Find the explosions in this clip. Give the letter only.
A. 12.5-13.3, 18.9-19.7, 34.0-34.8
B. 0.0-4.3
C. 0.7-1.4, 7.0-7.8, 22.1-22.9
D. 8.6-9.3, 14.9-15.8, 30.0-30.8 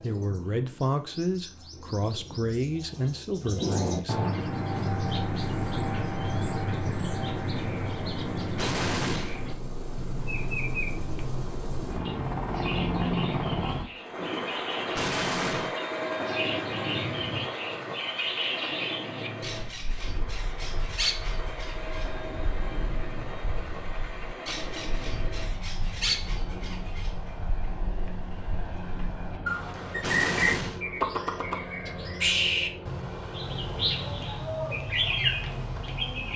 D.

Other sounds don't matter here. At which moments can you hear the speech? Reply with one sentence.
The speech can be heard from 0.0 to 4.3 s.